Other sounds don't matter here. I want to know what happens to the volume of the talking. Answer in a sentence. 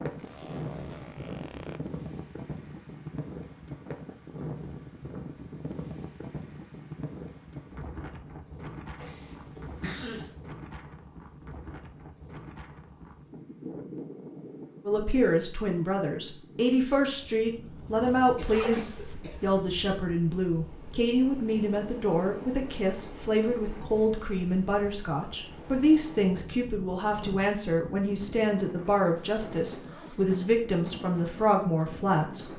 The loudness of the talking stays about the same.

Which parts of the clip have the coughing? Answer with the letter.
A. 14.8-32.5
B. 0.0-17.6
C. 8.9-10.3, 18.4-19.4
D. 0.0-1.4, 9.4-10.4
C.